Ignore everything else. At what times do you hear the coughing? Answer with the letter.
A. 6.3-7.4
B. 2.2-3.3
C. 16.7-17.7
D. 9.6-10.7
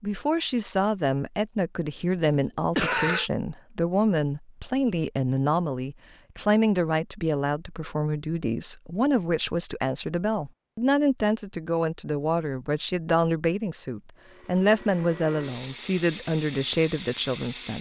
B.